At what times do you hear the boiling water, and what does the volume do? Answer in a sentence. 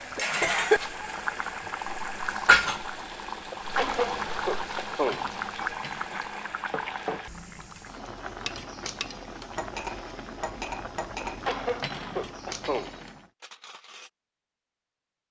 You can hear the boiling water from 0.0 to 13.3 s, getting quieter.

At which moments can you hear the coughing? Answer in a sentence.
You can hear the coughing from 3.5 to 5.3 s and from 11.4 to 12.9 s.